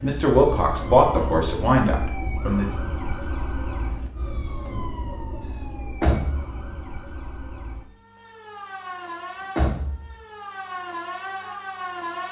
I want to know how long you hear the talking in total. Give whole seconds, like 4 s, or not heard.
3 s.